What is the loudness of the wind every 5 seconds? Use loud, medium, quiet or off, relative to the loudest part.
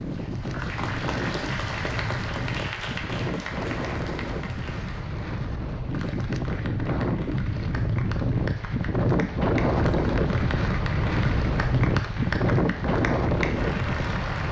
medium, loud, loud.